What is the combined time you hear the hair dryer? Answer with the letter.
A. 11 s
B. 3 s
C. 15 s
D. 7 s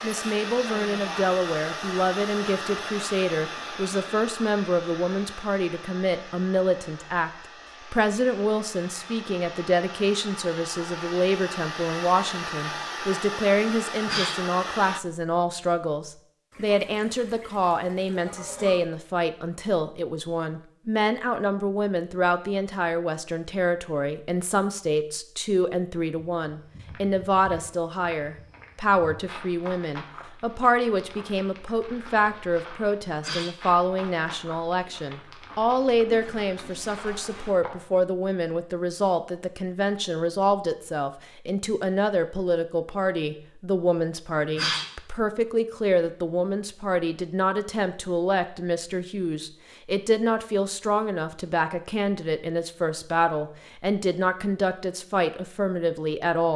C.